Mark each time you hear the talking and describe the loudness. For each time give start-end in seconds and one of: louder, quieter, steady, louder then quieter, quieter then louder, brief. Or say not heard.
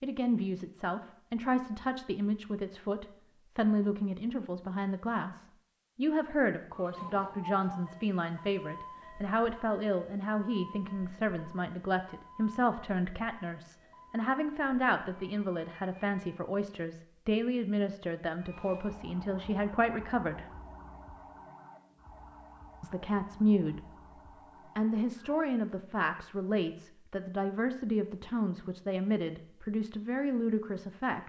0.0-20.4 steady
22.8-23.8 brief
24.8-31.2 steady.